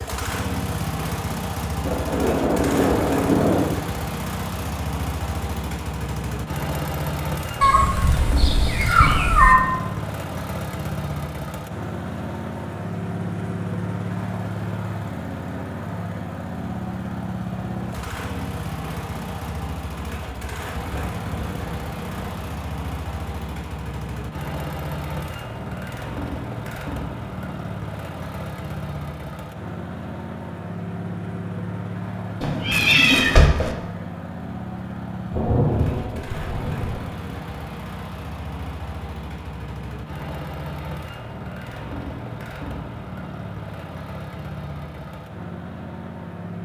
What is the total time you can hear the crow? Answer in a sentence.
You can't hear the crow here.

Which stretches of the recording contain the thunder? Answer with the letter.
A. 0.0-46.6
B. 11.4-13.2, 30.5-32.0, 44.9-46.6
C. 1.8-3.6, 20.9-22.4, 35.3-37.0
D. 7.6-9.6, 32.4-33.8
C.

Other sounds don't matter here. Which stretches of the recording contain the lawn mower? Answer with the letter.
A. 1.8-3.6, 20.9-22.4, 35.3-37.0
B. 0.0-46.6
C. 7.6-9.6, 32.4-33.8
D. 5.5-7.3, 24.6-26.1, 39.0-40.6
B.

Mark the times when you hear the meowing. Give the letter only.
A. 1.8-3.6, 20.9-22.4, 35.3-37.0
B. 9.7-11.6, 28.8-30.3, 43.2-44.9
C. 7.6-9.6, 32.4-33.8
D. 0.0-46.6
C.